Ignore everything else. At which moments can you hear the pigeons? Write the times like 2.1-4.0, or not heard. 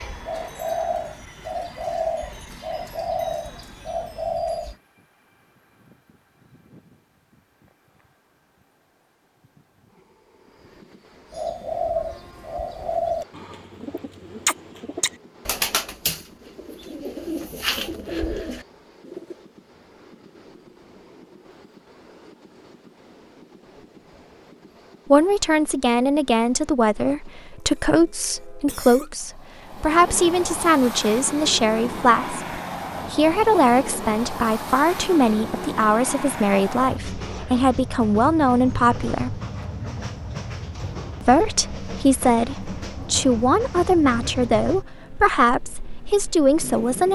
0.0-4.8, 11.3-19.4.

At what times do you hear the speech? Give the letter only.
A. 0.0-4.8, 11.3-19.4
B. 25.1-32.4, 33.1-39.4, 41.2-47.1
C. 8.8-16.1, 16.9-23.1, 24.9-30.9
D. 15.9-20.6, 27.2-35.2
B.